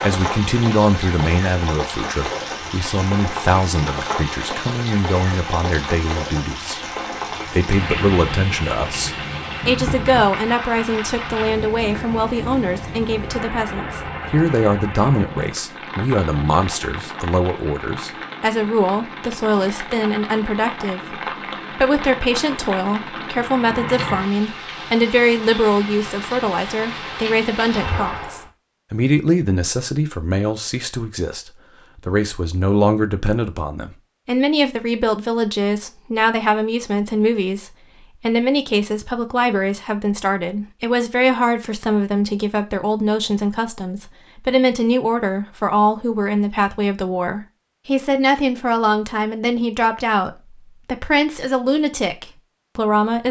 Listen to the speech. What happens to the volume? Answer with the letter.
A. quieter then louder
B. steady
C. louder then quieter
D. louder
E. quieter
B.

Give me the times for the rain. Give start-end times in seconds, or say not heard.
0.0-28.5.